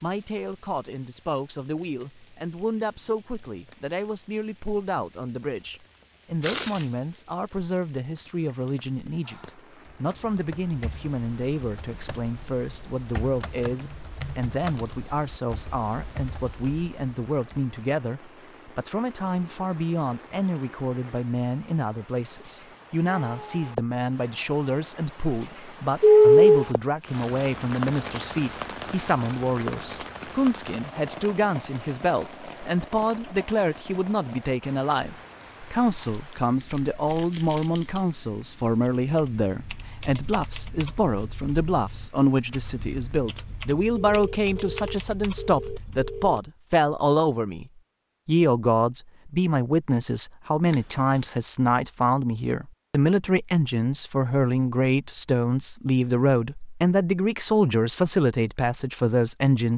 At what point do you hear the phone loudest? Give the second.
26 s.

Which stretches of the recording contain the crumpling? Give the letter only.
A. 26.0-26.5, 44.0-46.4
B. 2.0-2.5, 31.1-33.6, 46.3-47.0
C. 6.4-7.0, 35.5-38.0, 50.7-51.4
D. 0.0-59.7
C.